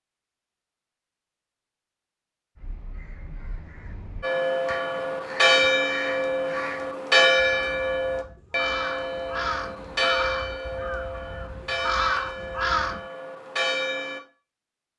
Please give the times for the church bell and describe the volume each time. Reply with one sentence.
The church bell can be heard from 4.2 to 14.2 s, getting quieter.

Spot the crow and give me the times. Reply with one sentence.
You can hear the crow from 2.5 to 13.1 s.